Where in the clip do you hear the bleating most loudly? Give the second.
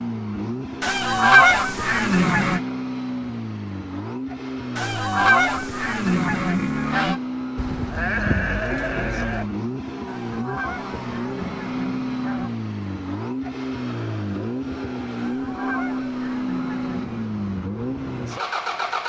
8 s.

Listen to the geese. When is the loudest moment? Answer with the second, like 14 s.
1 s.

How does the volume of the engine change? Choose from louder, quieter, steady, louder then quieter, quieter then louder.
steady.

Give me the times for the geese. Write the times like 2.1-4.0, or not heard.
0.8-2.6, 4.8-7.2, 10.1-12.5, 15.2-17.1.